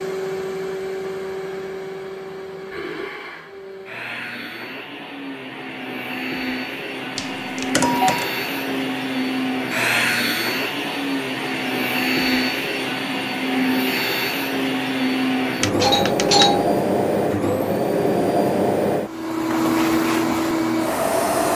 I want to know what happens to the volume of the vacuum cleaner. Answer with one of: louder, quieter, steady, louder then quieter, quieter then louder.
louder.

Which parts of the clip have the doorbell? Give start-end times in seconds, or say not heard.
7.2-8.3, 15.6-16.8.